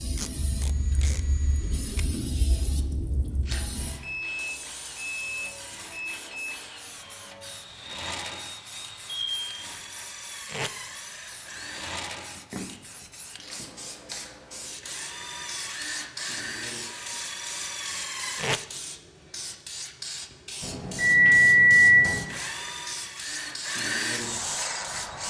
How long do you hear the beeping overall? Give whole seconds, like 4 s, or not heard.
5 s.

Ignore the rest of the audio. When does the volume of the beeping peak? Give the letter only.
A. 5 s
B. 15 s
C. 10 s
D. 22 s
D.